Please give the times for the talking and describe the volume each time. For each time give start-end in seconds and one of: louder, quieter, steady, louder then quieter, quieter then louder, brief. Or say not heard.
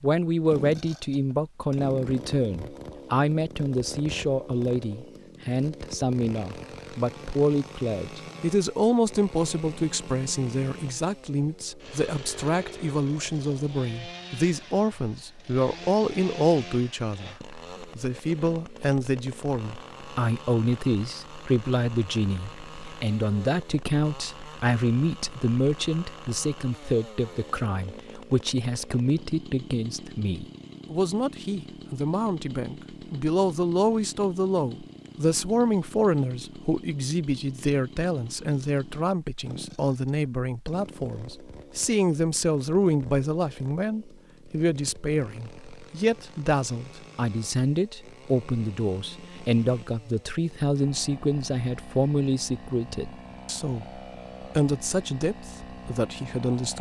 0.0-56.7 steady.